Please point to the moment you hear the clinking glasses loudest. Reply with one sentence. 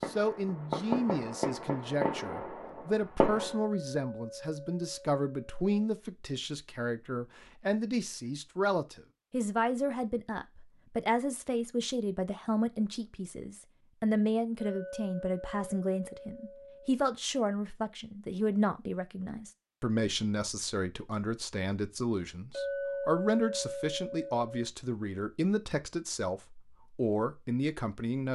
The loudest moment of the clinking glasses is at 23 seconds.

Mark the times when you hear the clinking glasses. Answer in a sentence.
The clinking glasses can be heard from 3.4 to 5.7 s, from 14.6 to 16.9 s and from 22.5 to 24.6 s.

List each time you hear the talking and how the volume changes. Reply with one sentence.
The talking can be heard from 0.1 to 28.3 s, at a steady volume.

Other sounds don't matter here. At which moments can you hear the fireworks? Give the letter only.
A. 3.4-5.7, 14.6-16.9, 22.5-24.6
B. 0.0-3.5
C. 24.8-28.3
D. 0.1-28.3
B.